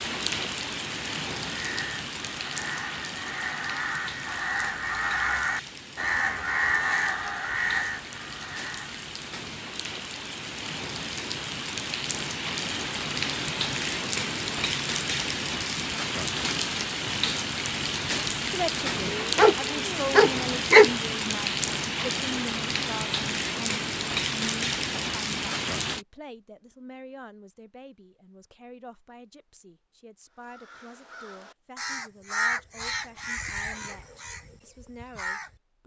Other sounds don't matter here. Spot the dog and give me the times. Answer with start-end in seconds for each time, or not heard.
19.1-20.9.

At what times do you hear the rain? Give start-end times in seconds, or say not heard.
0.0-26.1.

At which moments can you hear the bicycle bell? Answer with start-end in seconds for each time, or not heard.
not heard.